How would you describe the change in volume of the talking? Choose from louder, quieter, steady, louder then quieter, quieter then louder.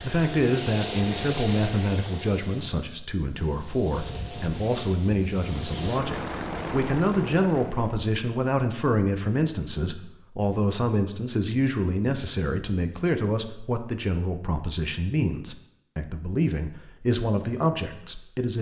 steady.